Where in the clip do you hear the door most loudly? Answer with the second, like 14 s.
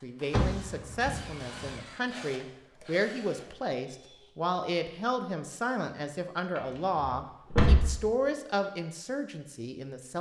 8 s.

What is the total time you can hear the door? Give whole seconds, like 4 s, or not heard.
3 s.